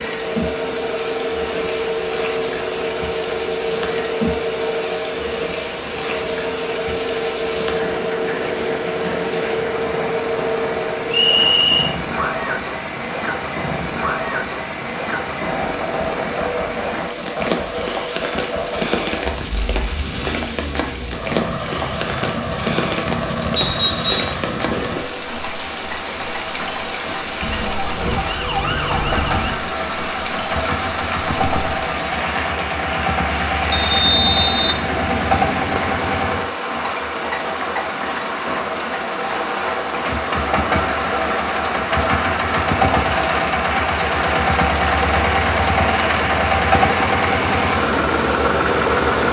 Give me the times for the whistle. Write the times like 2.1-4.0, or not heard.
11.1-11.9, 23.6-24.4, 33.7-34.8.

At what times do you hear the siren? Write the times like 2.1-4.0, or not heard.
27.4-29.6.